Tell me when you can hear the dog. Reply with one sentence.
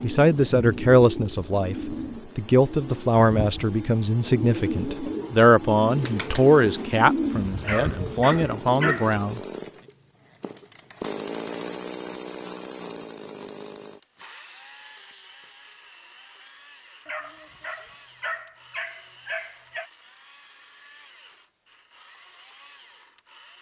You can hear the dog from 7.6 to 9.1 s and from 17.1 to 19.9 s.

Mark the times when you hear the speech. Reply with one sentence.
The speech can be heard from 0.0 to 9.4 s.